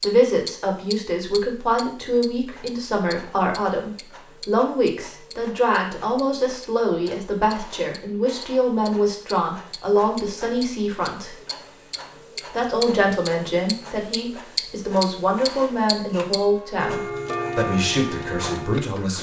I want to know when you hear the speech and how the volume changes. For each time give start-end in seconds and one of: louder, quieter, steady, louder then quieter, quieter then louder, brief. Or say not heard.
0.0-11.3 steady
12.5-19.1 steady.